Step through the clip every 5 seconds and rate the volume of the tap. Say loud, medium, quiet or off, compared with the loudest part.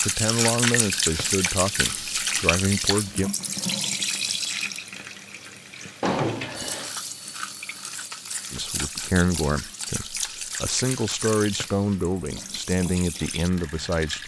loud, medium, medium.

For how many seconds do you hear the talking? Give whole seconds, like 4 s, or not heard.
9 s.